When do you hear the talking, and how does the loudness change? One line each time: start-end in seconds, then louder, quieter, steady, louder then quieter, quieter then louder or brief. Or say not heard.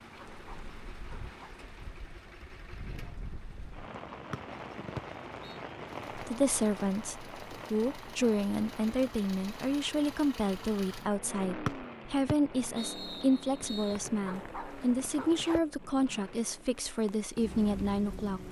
6.2-18.4 steady.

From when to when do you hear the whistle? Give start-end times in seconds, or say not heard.
4.3-5.6, 11.7-13.9.